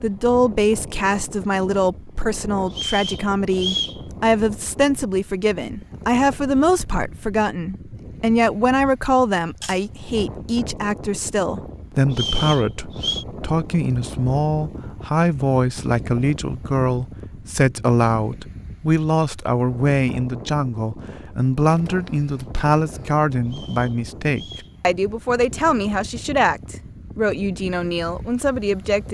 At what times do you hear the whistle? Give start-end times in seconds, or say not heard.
2.7-4.0, 12.1-13.2, 23.4-24.8.